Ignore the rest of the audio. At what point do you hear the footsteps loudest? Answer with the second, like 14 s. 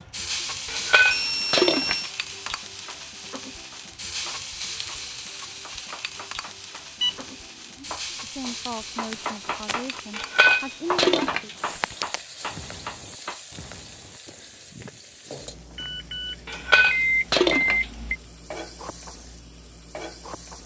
12 s.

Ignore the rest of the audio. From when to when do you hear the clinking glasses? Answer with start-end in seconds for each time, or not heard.
0.7-2.1, 10.1-11.9, 16.4-17.9.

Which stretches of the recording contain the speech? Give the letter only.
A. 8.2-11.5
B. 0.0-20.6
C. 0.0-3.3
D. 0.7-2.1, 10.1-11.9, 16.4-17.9
A.